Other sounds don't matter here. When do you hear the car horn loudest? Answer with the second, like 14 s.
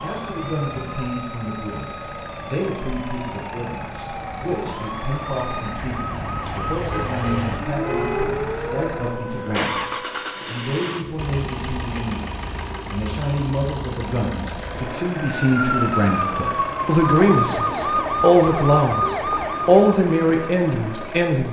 8 s.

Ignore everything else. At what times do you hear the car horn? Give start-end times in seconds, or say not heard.
6.8-8.2.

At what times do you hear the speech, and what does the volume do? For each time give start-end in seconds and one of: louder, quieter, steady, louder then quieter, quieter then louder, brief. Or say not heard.
0.0-21.4 louder.